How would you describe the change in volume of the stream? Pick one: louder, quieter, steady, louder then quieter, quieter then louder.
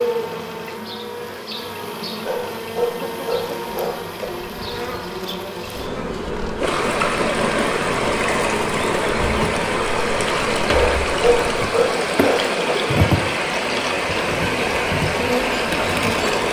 steady.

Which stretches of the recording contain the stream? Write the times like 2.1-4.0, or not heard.
6.5-16.4.